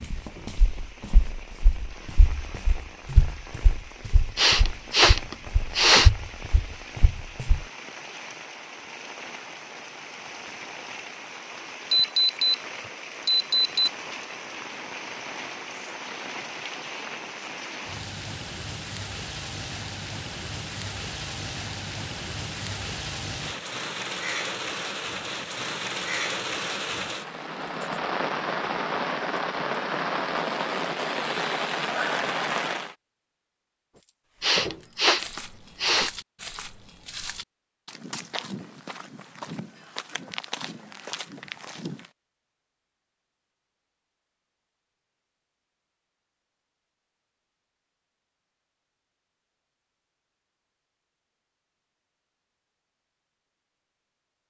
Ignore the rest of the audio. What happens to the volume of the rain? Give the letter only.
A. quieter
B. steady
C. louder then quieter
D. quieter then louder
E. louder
E.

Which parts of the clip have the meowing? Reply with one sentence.
The meowing can't be heard in this clip.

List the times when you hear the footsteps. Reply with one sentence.
You can hear the footsteps from 0.0 to 7.7 s and from 34.0 to 42.1 s.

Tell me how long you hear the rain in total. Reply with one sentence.
The rain can be heard for 33 seconds in total.